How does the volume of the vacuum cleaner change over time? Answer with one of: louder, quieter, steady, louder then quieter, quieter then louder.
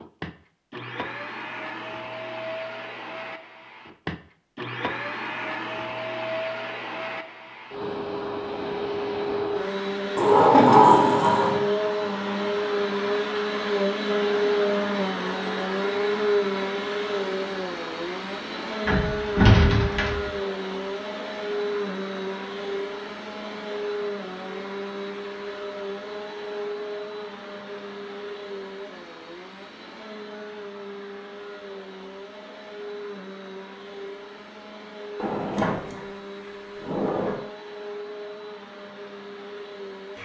louder then quieter.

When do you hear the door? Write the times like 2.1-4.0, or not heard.
10.2-11.6, 18.9-20.3, 35.1-37.4.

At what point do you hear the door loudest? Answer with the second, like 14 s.
11 s.